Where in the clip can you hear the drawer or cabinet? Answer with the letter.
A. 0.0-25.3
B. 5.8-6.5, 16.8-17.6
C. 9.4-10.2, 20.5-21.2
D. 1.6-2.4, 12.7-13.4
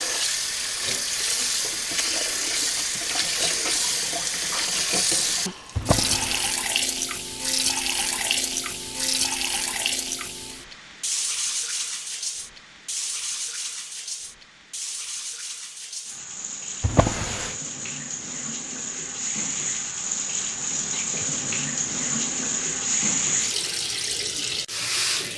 B.